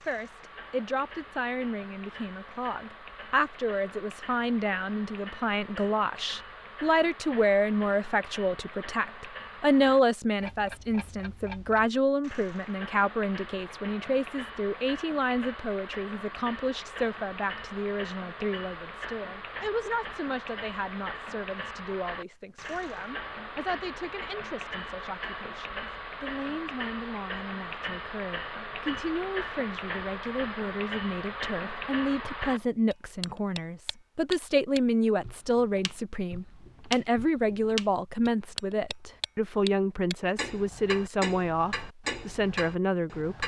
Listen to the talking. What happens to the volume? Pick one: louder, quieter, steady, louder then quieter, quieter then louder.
quieter then louder.